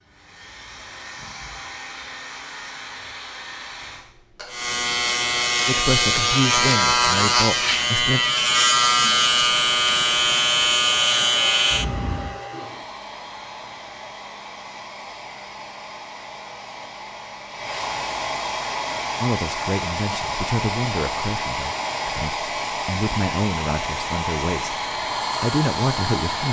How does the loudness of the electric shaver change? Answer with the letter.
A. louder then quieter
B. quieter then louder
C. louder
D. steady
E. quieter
D.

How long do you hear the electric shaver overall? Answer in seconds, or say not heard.
8 s.